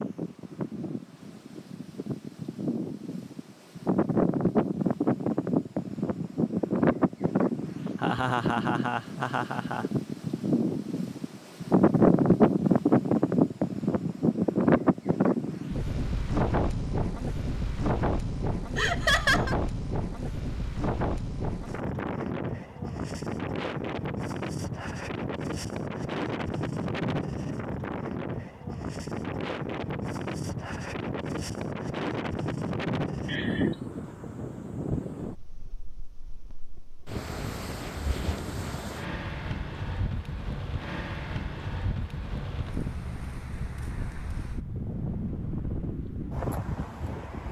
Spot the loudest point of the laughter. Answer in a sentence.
The loudest moment of the laughter is at 19 seconds.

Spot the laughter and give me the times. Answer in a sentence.
You can hear the laughter from 8.0 to 9.8 s, from 18.8 to 19.6 s and from 33.2 to 33.8 s.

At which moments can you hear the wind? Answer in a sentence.
You can hear the wind from 0.0 to 47.4 s.